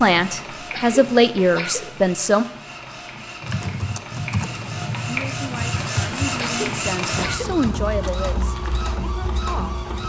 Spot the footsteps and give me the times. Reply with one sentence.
You can't hear the footsteps here.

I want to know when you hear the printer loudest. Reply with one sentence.
The volume of the printer peaks at 7 seconds.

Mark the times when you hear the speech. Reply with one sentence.
The speech can be heard from 0.0 to 2.5 s and from 5.0 to 9.8 s.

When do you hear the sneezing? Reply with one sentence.
You can hear the sneezing from 0.7 to 1.9 s and from 6.3 to 7.6 s.